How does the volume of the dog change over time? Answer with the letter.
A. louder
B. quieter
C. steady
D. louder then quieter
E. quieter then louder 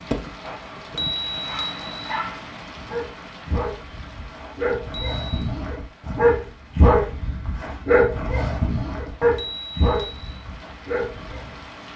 D.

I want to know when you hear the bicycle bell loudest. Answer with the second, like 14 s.
1 s.